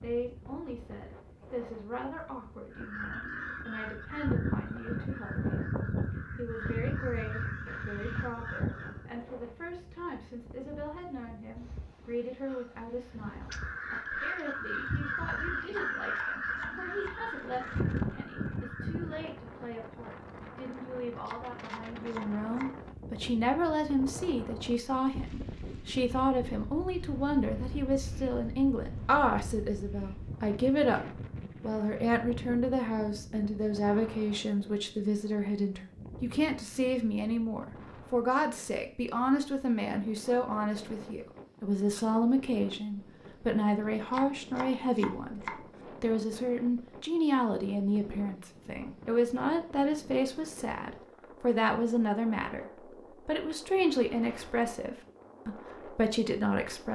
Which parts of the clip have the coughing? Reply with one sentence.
You can't hear the coughing here.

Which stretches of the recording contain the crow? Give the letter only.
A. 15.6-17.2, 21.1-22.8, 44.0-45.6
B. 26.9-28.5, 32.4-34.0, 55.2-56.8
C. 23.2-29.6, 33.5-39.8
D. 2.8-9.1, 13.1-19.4
D.